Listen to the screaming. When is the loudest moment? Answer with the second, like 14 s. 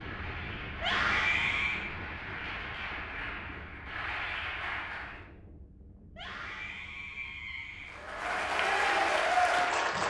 1 s.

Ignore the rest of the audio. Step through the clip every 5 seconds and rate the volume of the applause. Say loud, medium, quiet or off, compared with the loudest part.
medium, loud.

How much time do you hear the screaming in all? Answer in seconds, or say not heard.
3 s.